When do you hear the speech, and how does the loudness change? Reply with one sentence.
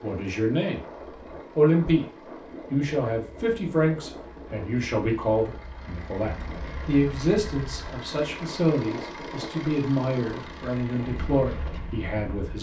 You can hear the speech briefly from 0.0 to 0.8 s; briefly from 1.6 to 2.0 s; and from 2.7 to 12.5 s, at a steady volume.